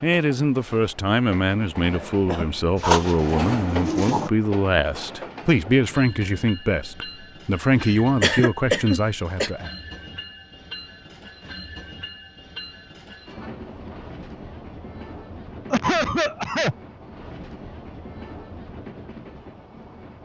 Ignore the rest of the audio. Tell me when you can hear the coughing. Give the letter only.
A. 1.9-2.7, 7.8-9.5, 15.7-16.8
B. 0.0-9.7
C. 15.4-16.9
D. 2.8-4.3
A.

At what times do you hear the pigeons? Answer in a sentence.
The pigeons can be heard from 2.8 to 4.3 s.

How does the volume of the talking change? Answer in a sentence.
The volume of the talking stays about the same.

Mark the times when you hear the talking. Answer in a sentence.
The talking can be heard from 0.0 to 9.7 s.